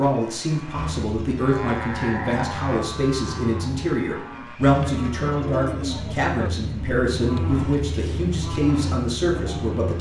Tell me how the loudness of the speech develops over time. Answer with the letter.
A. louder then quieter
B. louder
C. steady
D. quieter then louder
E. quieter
C.